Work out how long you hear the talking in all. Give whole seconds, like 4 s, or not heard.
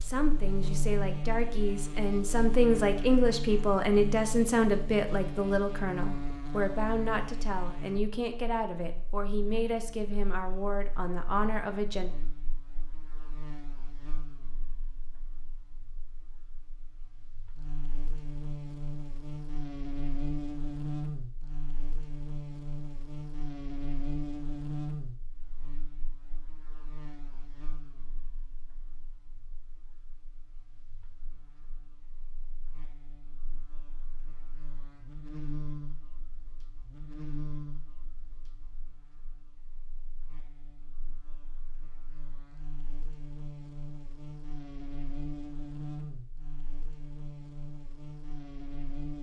12 s.